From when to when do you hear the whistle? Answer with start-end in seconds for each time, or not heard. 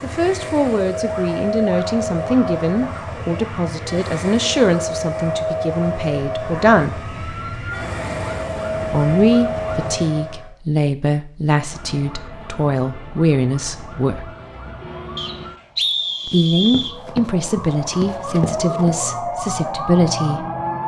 15.2-16.9.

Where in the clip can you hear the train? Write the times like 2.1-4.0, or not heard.
0.0-10.5.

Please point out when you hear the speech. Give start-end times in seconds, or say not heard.
0.0-7.0, 8.9-14.3, 16.2-20.4.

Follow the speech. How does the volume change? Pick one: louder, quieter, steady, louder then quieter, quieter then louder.
steady.